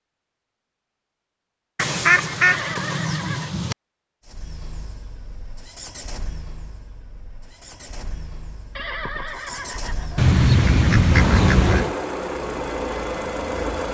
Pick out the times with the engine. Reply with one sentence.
You can hear the engine from 4.2 to 13.8 s.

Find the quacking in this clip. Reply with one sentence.
You can hear the quacking from 1.8 to 3.8 s and from 10.2 to 11.9 s.